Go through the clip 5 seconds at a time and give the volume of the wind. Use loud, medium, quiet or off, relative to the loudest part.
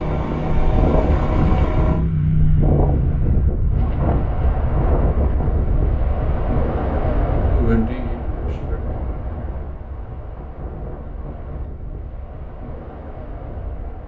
loud, loud, quiet.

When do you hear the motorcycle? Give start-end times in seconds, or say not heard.
0.0-3.5.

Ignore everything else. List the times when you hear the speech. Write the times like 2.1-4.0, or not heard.
7.4-8.8.